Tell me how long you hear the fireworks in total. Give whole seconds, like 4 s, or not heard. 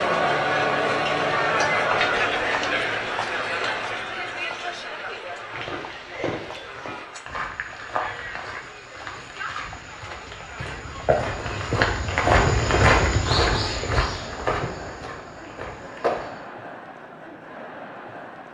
not heard.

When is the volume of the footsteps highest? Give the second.
13 s.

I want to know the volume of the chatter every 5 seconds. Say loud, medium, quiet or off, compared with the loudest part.
loud, quiet, quiet, quiet.